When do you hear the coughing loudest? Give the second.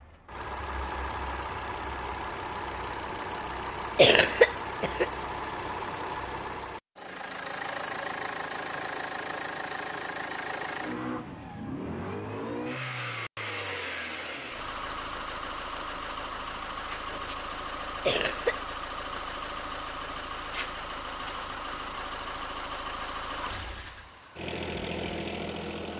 4 s.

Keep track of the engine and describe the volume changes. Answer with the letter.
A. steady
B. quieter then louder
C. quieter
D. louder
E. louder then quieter
A.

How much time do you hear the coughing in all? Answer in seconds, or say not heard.
2 s.